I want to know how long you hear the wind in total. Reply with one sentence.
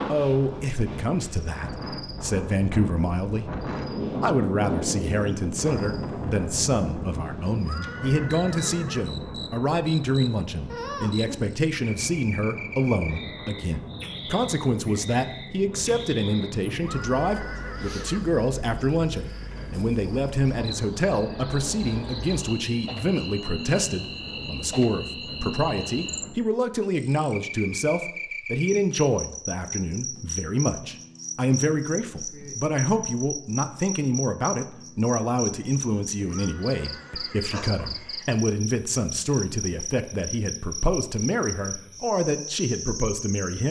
The wind can be heard for 26 seconds in total.